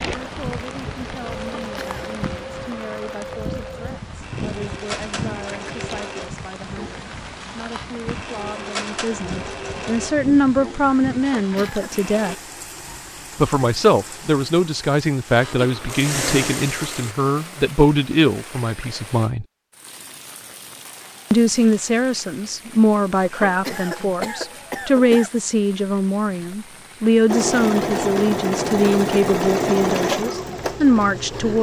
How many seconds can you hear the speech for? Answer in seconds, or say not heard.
29 s.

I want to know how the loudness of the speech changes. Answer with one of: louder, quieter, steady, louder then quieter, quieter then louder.
louder.